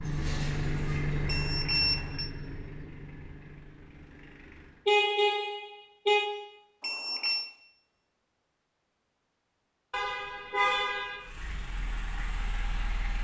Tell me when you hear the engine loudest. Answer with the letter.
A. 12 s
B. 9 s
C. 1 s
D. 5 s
C.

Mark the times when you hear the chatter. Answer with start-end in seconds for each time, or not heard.
not heard.